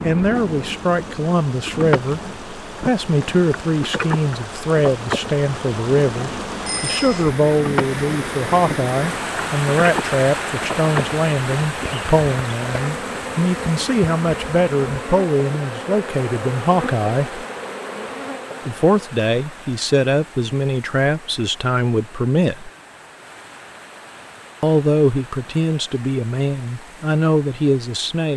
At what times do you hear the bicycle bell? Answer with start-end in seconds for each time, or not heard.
6.7-7.3.